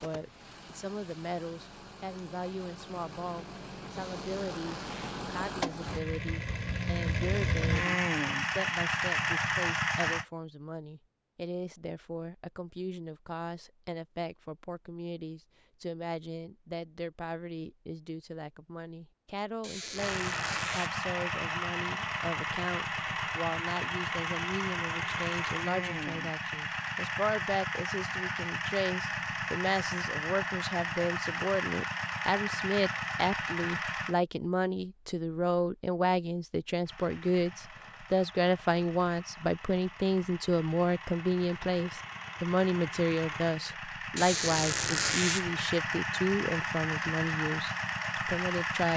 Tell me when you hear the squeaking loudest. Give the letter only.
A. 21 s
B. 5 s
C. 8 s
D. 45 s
D.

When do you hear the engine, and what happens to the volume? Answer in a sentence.
You can hear the engine from 0.0 to 10.2 s, getting louder; from 19.9 to 34.1 s, at a steady volume; and from 36.9 to 48.9 s, getting louder.